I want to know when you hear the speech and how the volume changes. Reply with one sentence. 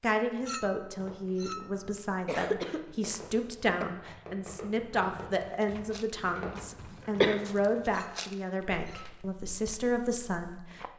You can hear the speech from 0.0 to 10.8 s, at a steady volume.